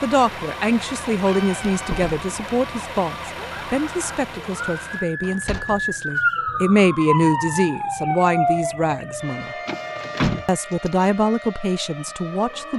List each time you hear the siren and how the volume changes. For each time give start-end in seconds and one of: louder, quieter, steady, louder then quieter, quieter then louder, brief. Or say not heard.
0.1-12.7 louder then quieter.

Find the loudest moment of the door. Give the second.
10 s.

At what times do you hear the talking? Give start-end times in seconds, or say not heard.
0.0-9.6, 10.4-12.7.